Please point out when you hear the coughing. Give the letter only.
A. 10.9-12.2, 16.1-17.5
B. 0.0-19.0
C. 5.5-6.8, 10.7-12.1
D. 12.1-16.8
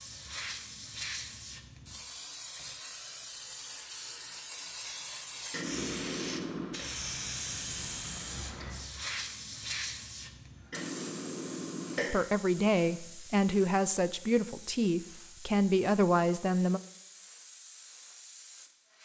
C.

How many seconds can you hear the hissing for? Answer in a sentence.
You can hear the hissing for 19 seconds altogether.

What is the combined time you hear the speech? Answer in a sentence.
You can hear the speech for 5 seconds altogether.